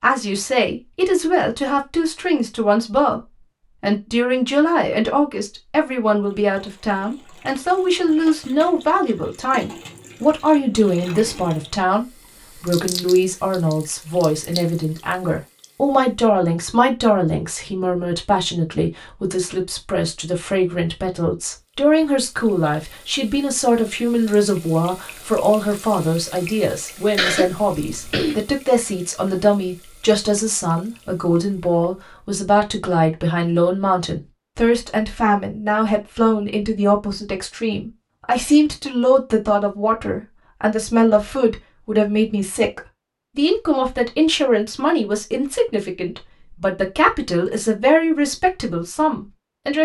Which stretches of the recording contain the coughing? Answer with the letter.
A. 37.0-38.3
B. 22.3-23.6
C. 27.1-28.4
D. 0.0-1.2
C.